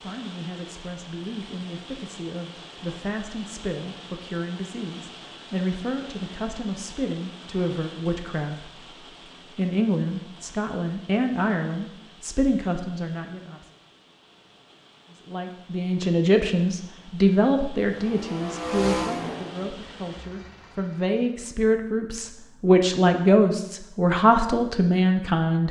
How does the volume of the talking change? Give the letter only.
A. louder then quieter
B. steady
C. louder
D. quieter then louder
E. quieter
C.